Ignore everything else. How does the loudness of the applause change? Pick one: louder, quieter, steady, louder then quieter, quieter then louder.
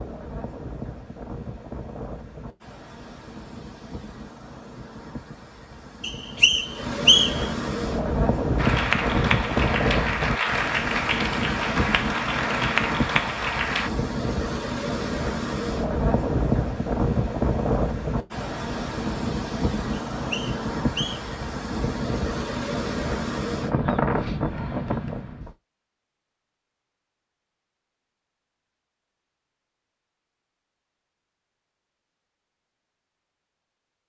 steady.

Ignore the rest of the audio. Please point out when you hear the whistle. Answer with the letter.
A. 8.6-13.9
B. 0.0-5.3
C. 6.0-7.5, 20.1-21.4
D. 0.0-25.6
C.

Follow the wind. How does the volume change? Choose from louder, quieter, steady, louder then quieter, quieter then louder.
louder.